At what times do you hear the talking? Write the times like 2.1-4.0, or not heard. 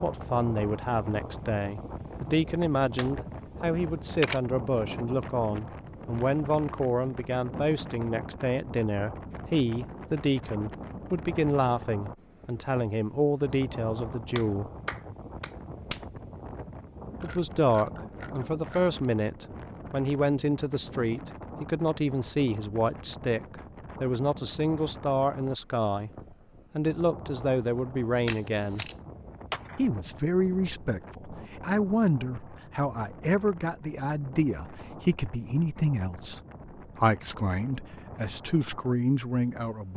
0.0-14.7, 17.2-26.1, 26.8-28.9, 29.8-39.9.